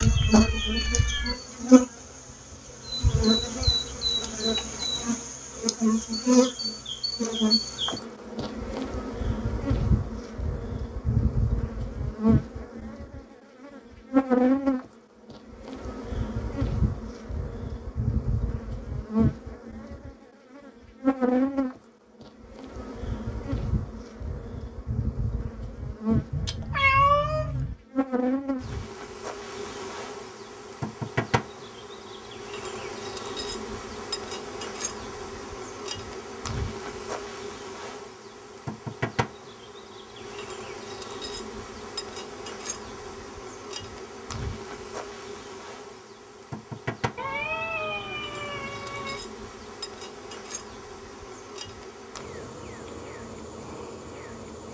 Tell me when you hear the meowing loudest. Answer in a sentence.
The volume of the meowing peaks at 27 seconds.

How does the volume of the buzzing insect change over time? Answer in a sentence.
The loudness of the buzzing insect goes down.